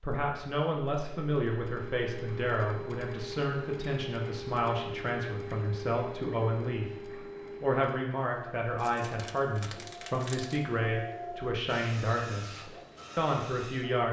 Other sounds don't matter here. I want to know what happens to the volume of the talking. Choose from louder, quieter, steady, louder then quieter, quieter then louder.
steady.